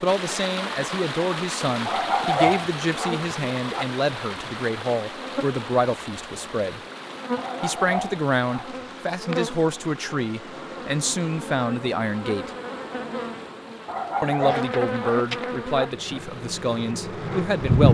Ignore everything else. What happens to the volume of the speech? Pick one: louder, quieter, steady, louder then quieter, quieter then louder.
steady.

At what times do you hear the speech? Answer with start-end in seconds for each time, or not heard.
0.0-6.8, 7.6-12.5, 14.2-17.8.